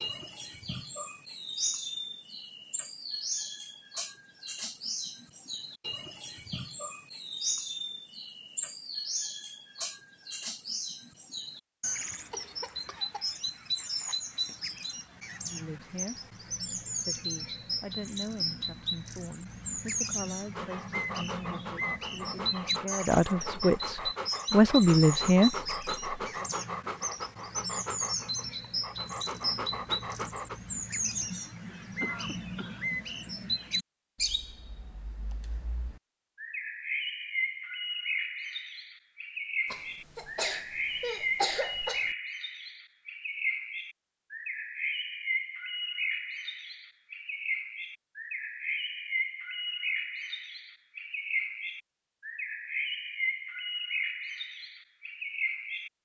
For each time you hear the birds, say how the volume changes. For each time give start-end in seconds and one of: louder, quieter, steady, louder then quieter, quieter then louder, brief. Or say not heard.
0.0-55.9 steady.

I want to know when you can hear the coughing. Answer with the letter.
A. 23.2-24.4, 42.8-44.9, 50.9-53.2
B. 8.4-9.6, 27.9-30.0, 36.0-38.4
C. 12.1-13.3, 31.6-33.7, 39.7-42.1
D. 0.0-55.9
C.